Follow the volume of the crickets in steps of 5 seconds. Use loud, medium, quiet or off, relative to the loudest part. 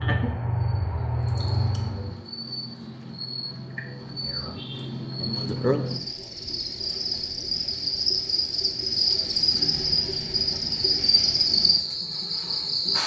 medium, loud, loud.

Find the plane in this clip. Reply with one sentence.
The plane can be heard from 0.0 to 2.2 s.